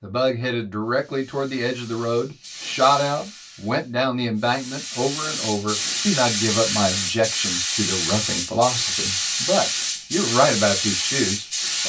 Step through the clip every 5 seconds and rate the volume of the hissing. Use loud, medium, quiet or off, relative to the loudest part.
quiet, loud, loud.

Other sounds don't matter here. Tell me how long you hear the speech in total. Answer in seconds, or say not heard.
12 s.